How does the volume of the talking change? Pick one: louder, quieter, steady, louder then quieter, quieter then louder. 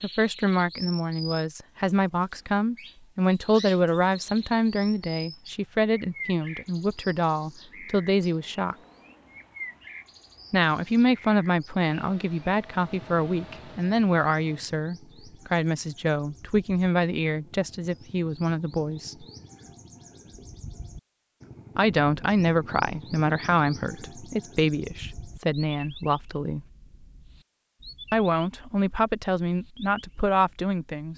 steady.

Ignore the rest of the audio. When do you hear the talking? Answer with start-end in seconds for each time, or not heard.
0.0-8.8, 10.5-19.2, 21.8-26.6, 28.1-31.1.